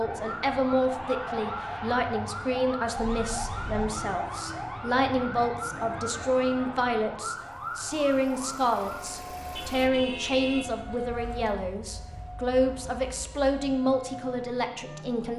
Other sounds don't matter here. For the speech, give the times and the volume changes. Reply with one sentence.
The speech can be heard from 0.0 to 15.3 s, at a steady volume.